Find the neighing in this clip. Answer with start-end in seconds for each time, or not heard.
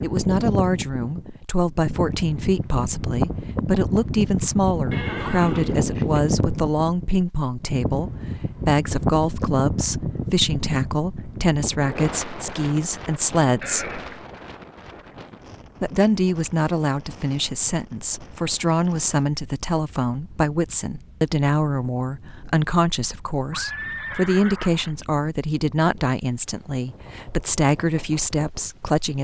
4.9-6.4, 13.6-14.2, 23.5-24.9.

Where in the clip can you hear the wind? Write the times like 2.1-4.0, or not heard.
0.0-29.1.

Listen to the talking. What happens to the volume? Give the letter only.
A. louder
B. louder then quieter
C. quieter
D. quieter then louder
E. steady
E.